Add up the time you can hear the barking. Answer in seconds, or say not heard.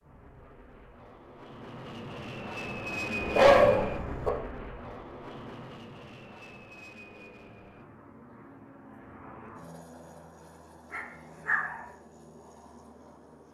2 s.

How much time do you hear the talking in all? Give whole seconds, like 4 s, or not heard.
not heard.